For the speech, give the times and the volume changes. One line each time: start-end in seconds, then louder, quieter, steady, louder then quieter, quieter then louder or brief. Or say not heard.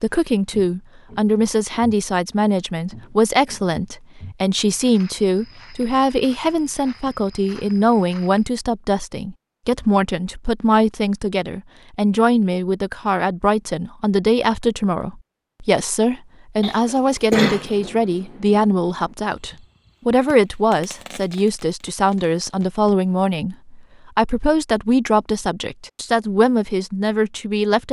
0.0-27.8 steady.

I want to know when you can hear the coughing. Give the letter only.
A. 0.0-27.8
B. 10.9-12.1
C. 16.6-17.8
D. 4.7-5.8
C.